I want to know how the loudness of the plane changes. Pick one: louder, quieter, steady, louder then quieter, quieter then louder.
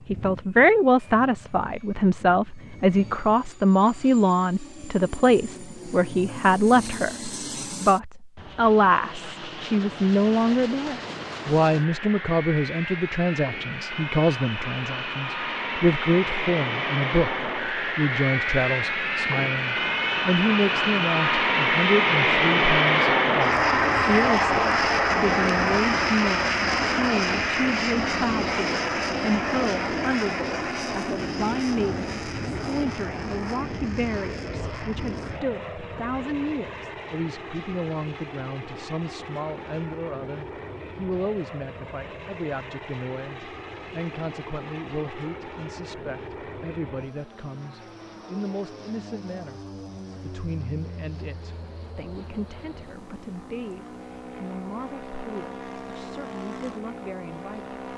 louder then quieter.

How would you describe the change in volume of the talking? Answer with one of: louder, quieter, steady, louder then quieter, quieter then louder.
quieter.